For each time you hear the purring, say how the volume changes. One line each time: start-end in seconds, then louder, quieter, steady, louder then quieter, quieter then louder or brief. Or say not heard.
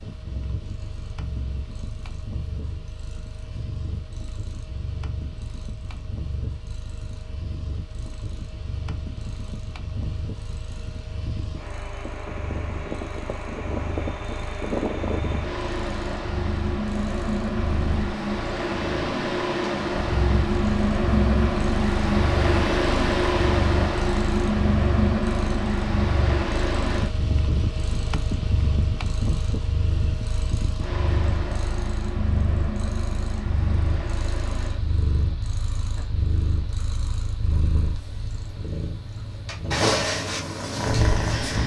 0.0-41.6 louder.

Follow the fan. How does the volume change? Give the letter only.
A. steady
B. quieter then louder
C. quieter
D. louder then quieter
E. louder
D.